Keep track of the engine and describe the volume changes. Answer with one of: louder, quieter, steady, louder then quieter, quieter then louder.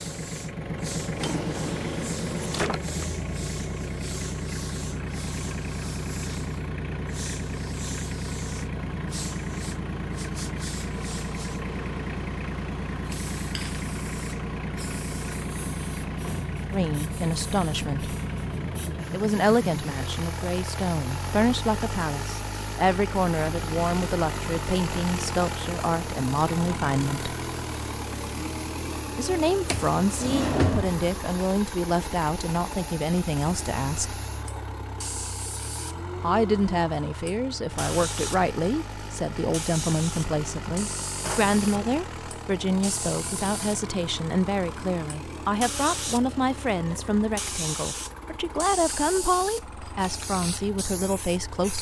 quieter.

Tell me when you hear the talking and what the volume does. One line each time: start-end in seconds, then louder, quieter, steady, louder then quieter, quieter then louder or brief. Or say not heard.
16.7-18.1 brief
19.1-27.4 steady
29.1-34.2 steady
36.2-51.7 steady.